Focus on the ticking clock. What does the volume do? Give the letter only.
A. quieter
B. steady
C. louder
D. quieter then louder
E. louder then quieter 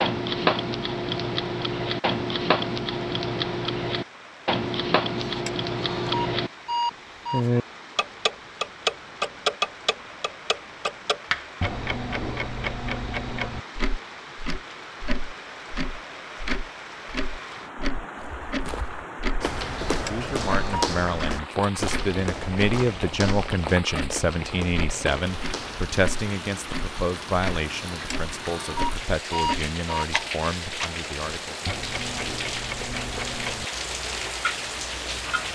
A.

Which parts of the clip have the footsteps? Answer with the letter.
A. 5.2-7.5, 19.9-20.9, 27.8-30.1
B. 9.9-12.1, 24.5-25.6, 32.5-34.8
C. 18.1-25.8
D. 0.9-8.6
C.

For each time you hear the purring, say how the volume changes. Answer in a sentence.
You can't hear the purring here.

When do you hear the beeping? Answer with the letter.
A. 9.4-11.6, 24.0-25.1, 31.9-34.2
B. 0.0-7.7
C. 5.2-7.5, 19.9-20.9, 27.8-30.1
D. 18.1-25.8
C.